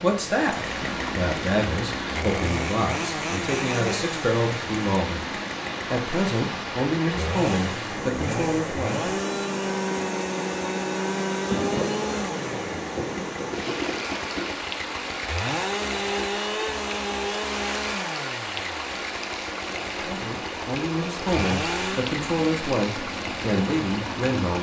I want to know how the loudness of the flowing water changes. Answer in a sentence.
The loudness of the flowing water stays about the same.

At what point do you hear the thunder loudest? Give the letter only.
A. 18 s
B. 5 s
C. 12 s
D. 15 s
C.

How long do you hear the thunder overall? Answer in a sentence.
You can hear the thunder for 3 seconds altogether.